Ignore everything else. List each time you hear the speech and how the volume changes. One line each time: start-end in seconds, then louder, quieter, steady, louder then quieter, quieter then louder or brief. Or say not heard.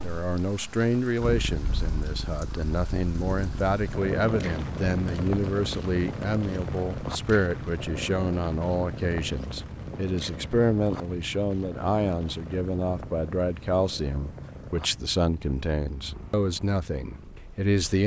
0.0-18.0 steady.